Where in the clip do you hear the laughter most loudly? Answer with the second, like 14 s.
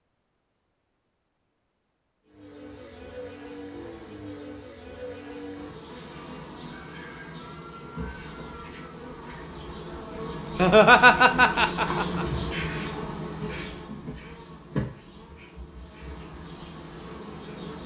11 s.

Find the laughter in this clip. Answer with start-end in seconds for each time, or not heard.
10.6-12.2.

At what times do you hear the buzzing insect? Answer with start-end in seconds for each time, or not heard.
2.2-17.8.